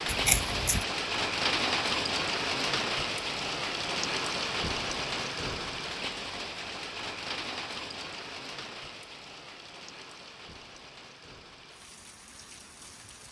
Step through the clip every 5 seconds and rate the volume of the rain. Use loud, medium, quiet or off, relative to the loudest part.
loud, medium, quiet.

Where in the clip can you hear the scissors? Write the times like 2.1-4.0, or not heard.
0.1-0.8.